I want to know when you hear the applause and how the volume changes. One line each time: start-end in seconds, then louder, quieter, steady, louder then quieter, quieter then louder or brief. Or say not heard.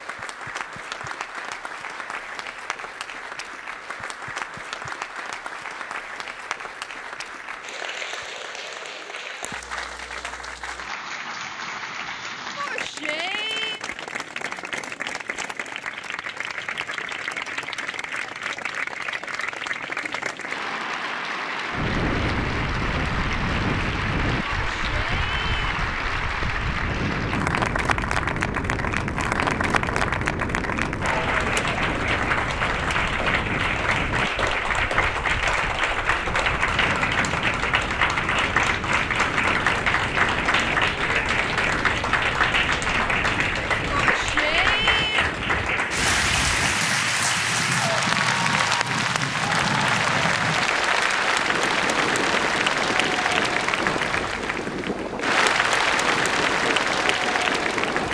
0.0-58.0 louder.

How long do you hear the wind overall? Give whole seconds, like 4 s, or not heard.
36 s.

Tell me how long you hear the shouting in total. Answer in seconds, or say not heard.
4 s.